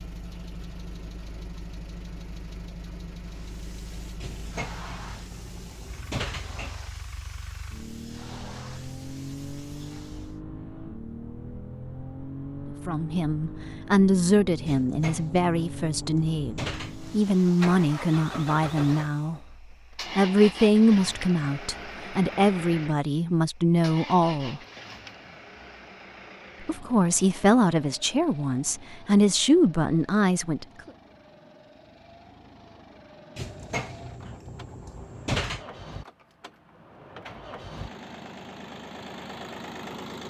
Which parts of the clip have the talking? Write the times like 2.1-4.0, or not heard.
12.8-19.4, 20.1-24.6, 26.6-30.6.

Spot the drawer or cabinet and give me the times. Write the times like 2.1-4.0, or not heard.
4.2-6.8, 14.7-17.0, 33.4-35.6.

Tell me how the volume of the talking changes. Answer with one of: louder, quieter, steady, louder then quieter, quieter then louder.
steady.